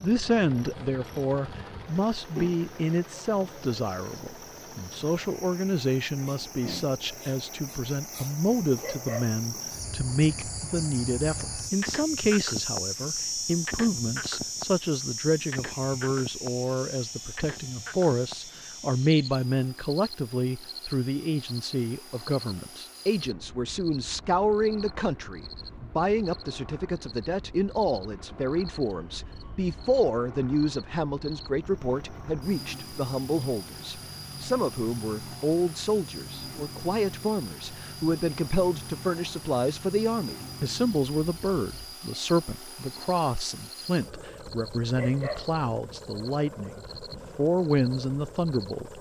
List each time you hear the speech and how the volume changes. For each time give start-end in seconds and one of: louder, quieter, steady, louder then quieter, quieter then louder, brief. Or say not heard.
0.0-48.9 steady.